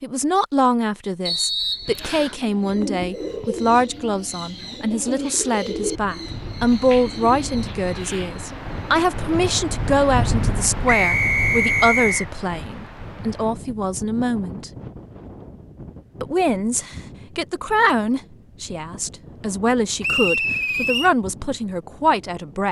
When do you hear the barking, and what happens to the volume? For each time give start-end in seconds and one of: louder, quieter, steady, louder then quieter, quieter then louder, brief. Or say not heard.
not heard.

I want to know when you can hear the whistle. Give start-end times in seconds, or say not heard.
1.2-2.4, 10.8-12.2, 20.0-21.1.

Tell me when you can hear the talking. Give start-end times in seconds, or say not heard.
0.0-14.7, 16.2-22.6.